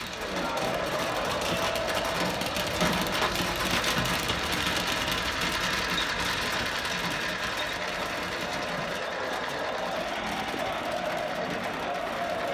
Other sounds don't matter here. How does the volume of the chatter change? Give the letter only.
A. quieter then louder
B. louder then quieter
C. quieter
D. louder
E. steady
A.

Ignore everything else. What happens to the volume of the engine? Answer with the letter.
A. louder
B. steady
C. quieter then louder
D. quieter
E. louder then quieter
E.